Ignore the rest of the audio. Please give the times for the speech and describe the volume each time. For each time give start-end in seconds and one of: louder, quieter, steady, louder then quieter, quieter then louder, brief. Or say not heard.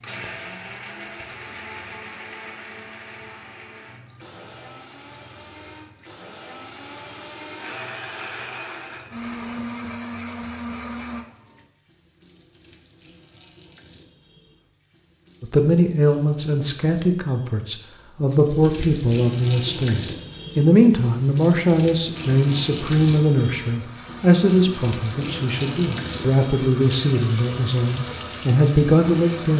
15.4-29.5 steady.